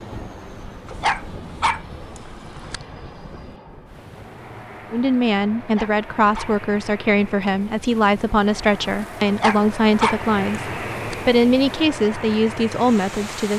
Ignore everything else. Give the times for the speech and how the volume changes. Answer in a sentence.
You can hear the speech from 4.9 to 13.5 s, at a steady volume.